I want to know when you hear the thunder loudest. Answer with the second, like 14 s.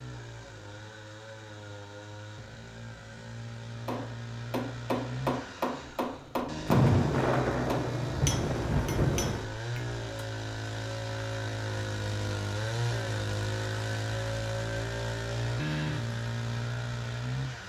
7 s.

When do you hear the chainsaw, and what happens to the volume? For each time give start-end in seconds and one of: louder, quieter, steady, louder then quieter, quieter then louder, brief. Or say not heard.
0.0-17.6 louder.